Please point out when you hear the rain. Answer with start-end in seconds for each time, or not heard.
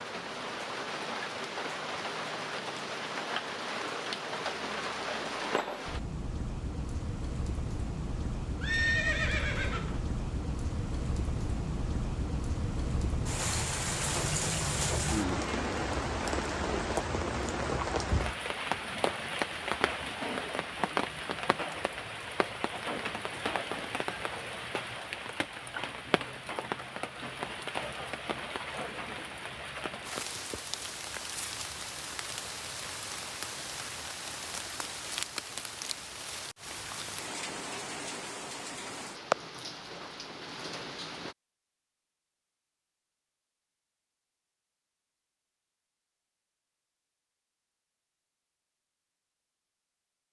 0.0-41.4.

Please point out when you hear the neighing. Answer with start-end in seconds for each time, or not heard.
8.6-10.0.